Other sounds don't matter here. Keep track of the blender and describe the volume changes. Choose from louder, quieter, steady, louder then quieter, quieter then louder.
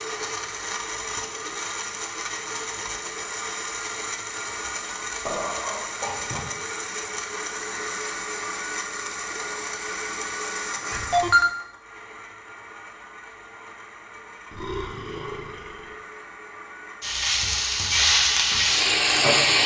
quieter.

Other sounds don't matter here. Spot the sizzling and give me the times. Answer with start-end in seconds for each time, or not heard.
17.0-19.6.